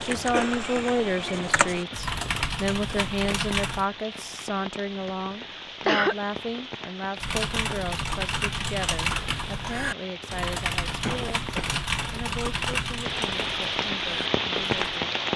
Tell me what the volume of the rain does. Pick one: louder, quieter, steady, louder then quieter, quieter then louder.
louder.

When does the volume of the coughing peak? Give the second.
6 s.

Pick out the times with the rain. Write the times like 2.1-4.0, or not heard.
0.0-15.3.